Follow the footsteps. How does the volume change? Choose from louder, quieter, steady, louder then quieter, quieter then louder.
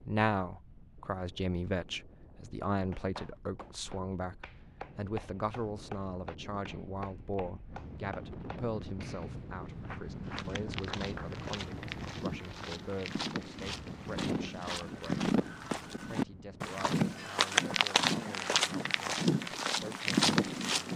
louder.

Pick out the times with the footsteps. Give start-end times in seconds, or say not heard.
10.2-20.9.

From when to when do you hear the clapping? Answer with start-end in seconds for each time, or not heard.
2.9-11.3.